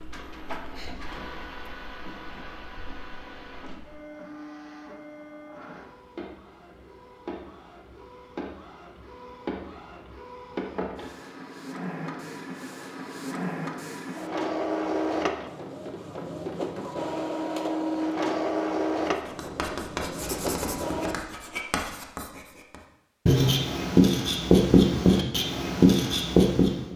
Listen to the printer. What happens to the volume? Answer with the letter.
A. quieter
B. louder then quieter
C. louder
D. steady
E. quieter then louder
C.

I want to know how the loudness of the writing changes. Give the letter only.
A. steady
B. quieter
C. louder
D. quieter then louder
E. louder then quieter
C.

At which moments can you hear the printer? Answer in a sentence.
The printer can be heard from 0.0 to 21.1 s.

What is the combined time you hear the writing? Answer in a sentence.
You can hear the writing for 8 seconds altogether.